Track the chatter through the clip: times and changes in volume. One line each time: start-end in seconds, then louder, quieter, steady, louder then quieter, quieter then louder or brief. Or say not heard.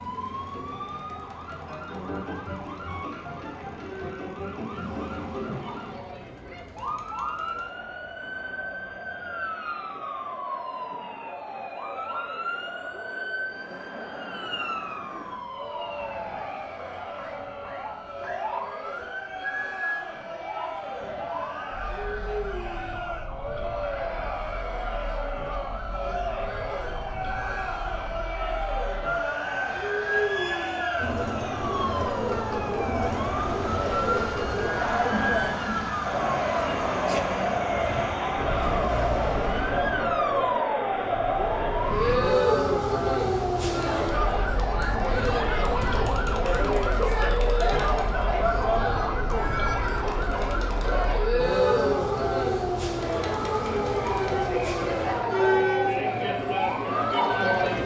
0.0-57.8 louder.